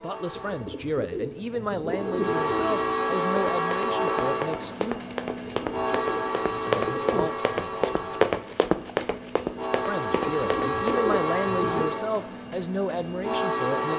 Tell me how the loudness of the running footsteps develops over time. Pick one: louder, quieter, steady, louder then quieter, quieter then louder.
louder then quieter.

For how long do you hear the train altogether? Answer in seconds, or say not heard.
14 s.